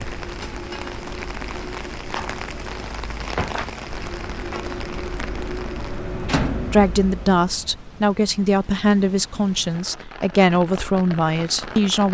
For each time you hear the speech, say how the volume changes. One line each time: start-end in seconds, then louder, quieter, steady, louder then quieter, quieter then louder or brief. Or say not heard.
6.5-12.0 steady.